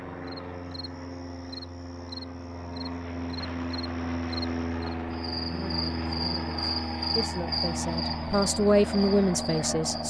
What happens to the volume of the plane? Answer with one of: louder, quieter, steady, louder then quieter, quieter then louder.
louder.